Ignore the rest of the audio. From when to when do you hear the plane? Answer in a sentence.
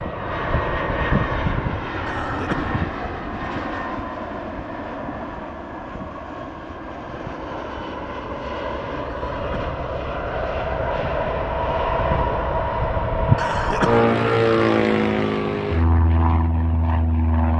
You can hear the plane from 0.0 to 17.5 s.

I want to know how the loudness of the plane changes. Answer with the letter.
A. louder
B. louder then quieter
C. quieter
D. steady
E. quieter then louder
E.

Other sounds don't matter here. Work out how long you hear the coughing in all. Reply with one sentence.
You can hear the coughing for 2 seconds altogether.